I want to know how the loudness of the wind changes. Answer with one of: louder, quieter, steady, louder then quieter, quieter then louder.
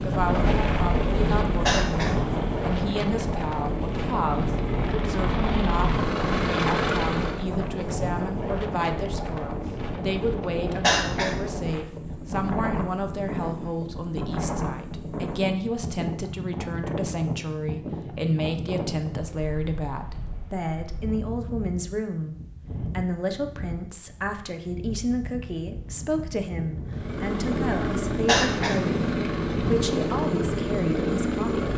quieter.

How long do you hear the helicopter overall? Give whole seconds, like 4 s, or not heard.
12 s.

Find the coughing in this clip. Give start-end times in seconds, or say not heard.
1.6-2.1, 10.8-11.3, 28.2-28.8.